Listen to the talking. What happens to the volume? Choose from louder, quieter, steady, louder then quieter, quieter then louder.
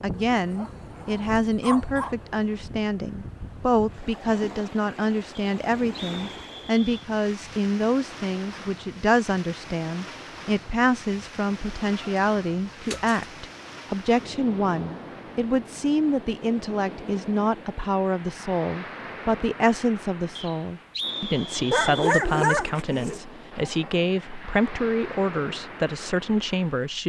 steady.